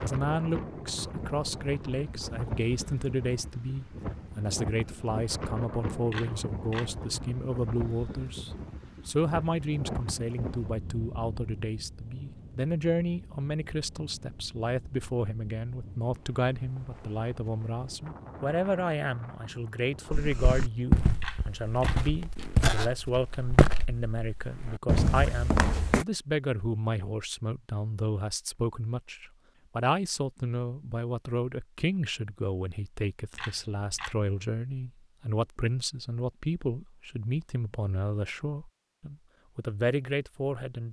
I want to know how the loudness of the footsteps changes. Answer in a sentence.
The loudness of the footsteps goes down, then up.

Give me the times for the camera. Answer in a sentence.
You can hear the camera from 6.1 to 6.9 s, from 21.2 to 22.0 s and from 33.4 to 34.1 s.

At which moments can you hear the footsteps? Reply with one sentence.
The footsteps can be heard from 20.1 to 26.1 s.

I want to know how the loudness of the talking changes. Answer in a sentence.
The volume of the talking stays about the same.